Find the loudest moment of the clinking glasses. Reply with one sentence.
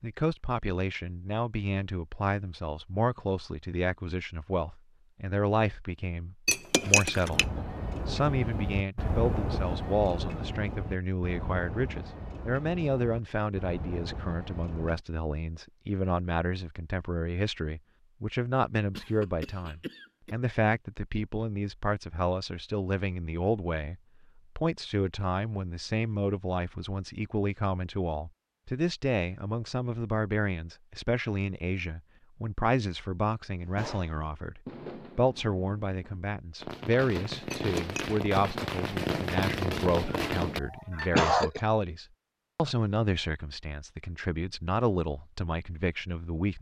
The volume of the clinking glasses peaks at 7 seconds.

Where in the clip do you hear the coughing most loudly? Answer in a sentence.
The volume of the coughing peaks at 41 seconds.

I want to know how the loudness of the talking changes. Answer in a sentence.
The volume of the talking stays about the same.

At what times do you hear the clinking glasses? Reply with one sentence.
The clinking glasses can be heard from 6.5 to 7.5 s and from 37.5 to 38.0 s.